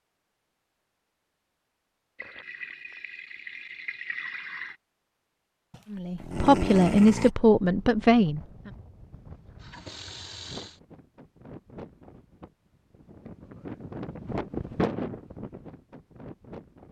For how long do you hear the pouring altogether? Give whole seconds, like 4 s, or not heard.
4 s.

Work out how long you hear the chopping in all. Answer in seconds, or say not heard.
not heard.